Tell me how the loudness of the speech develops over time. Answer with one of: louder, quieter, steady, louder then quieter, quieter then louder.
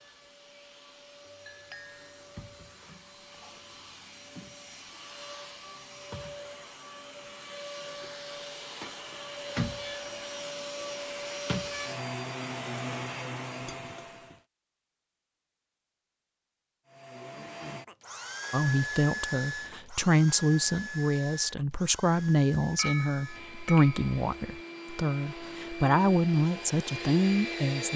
quieter then louder.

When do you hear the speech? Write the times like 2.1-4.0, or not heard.
18.5-27.9.